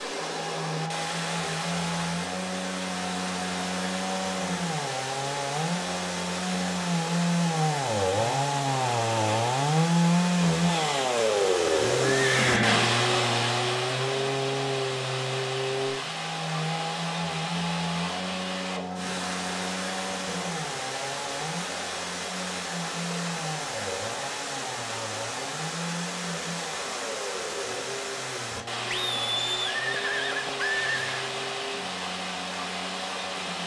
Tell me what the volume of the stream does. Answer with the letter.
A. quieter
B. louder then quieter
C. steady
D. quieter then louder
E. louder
C.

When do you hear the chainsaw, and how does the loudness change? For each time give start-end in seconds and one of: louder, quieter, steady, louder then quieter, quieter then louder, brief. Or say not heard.
0.2-33.6 louder then quieter.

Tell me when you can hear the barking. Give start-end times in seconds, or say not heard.
not heard.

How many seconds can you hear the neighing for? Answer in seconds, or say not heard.
3 s.